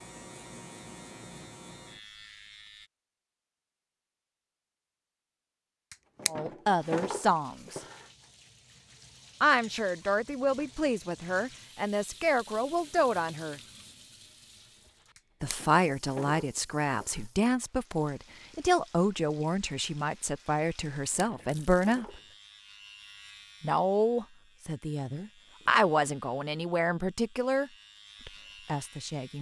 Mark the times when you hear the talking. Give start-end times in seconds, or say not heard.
6.2-7.8, 9.4-13.6, 15.4-22.1, 23.6-29.3.